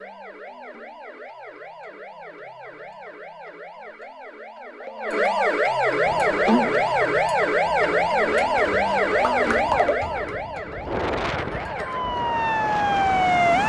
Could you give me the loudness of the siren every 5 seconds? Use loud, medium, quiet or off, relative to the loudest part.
quiet, loud, loud.